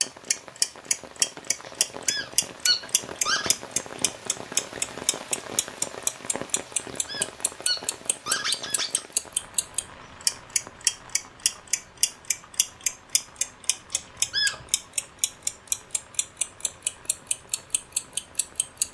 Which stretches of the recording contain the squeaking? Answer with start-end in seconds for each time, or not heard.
1.6-3.5, 6.7-9.0, 13.9-14.7.